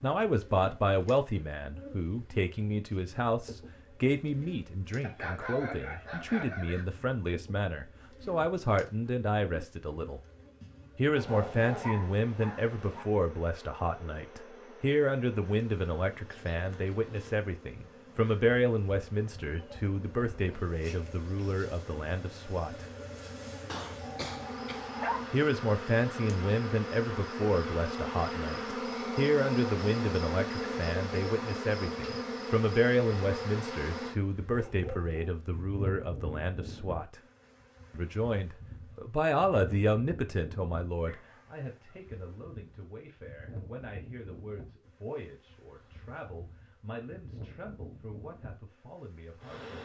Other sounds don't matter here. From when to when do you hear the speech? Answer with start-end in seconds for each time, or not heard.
0.0-10.2, 10.9-22.9, 25.3-37.2, 37.9-49.8.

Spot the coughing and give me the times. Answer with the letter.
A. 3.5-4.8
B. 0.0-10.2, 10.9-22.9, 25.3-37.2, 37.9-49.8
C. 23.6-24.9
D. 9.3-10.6
C.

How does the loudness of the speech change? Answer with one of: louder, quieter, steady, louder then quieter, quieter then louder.
quieter.